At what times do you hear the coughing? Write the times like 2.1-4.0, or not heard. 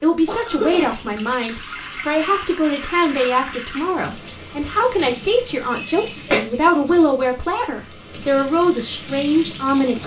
0.2-0.8, 5.7-6.4.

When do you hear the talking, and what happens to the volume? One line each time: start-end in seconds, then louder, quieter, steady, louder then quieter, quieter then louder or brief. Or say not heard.
0.0-10.0 steady.